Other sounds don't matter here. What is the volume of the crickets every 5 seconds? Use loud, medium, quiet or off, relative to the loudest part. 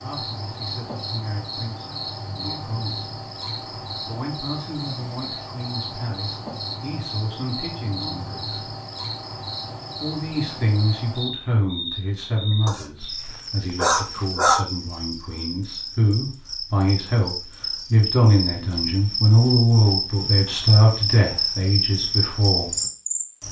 medium, medium, medium, medium, loud.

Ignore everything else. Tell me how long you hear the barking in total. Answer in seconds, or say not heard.
2 s.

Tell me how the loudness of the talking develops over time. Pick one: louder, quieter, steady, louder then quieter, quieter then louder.
louder.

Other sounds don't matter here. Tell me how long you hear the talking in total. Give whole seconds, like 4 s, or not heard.
20 s.